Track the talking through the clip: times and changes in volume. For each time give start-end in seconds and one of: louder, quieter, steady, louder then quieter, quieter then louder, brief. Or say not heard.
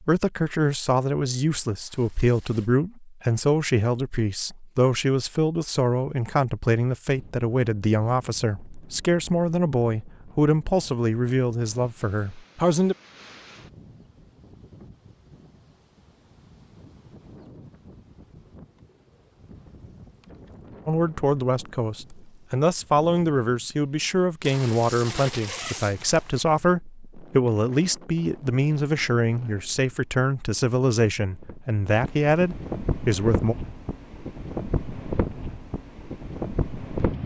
0.1-12.9 steady
20.9-33.5 steady.